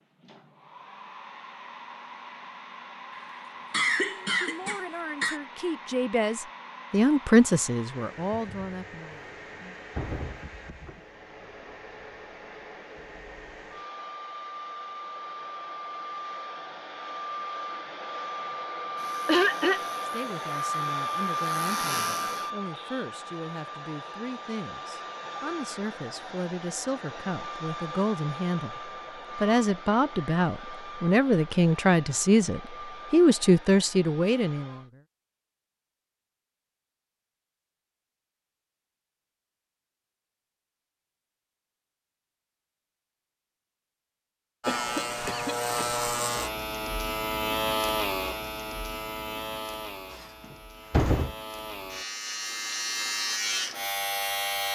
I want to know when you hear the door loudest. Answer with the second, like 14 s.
51 s.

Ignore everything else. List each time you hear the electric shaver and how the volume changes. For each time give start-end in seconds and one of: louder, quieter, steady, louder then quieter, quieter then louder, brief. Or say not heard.
18.9-23.1 louder
44.6-54.7 quieter then louder.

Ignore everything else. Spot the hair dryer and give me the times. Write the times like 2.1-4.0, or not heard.
0.0-34.9.